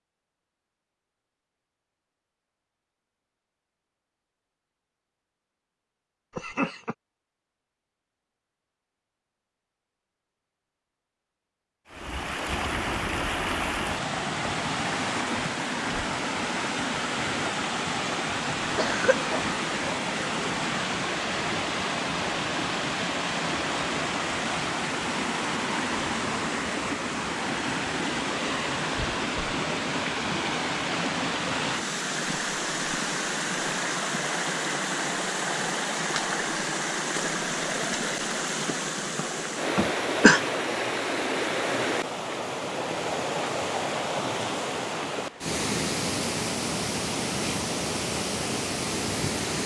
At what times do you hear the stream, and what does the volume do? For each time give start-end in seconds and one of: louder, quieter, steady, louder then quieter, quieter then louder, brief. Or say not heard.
11.8-49.6 steady.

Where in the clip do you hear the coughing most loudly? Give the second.
40 s.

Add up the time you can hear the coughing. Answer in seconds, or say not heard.
2 s.